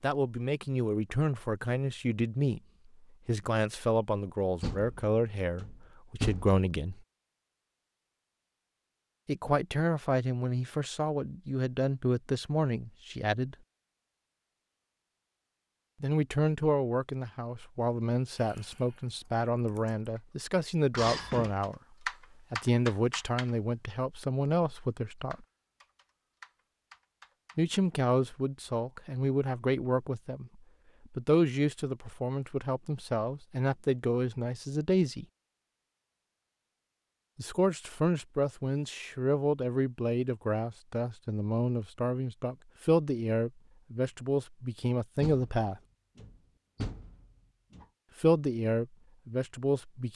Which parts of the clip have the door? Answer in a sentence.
You can hear the door from 4.6 to 6.6 s, from 20.9 to 21.6 s and from 45.2 to 47.9 s.